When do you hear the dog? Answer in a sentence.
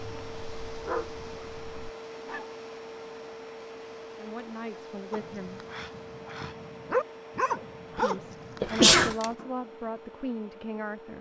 The dog can be heard from 0.0 to 2.5 s and from 5.1 to 9.0 s.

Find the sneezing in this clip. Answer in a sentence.
The sneezing can be heard from 8.6 to 9.2 s.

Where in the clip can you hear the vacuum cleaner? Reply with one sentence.
The vacuum cleaner can be heard from 0.0 to 11.1 s.